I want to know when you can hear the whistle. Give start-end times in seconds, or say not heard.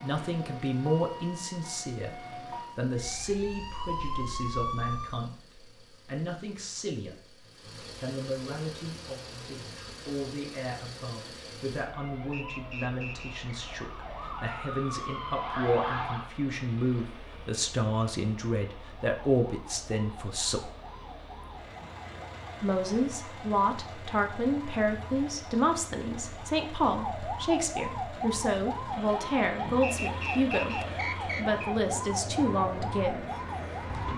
12.3-13.3, 29.8-31.7.